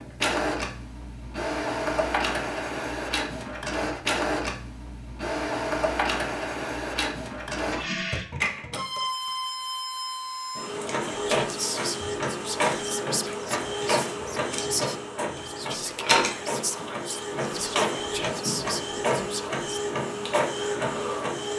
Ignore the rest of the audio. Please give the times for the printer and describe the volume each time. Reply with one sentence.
The printer can be heard from 0.0 to 21.5 s, at a steady volume.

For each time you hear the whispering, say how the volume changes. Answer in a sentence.
You can hear the whispering from 11.1 to 19.6 s, at a steady volume.